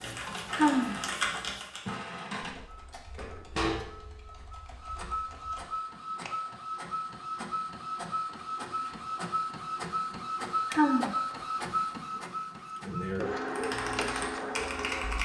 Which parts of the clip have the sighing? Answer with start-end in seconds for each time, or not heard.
0.5-0.9, 10.7-11.2.